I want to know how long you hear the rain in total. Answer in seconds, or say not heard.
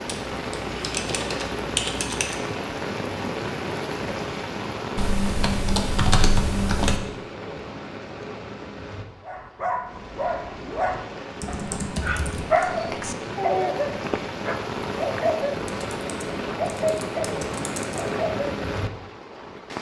20 s.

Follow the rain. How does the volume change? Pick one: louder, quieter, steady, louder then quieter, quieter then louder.
quieter then louder.